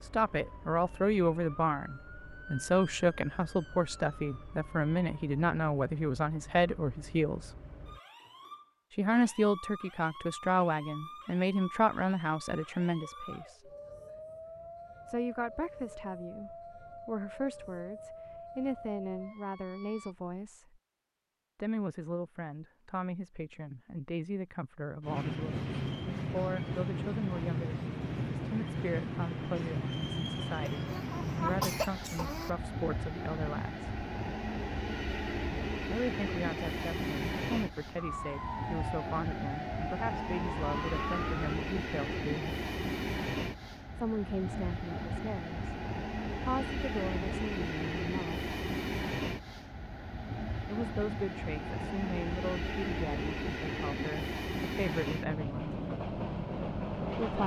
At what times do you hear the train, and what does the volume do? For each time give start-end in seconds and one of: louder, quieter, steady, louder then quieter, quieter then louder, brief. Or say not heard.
25.0-57.4 steady.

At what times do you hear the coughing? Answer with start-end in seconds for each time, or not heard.
30.6-32.5.